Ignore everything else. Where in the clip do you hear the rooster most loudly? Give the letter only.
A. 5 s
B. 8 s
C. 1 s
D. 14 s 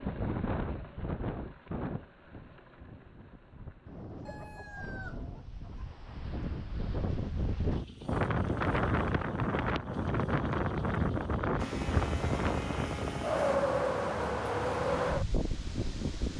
A.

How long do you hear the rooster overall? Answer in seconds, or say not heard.
2 s.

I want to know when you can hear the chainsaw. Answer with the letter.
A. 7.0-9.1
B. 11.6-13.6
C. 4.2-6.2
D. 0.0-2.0
B.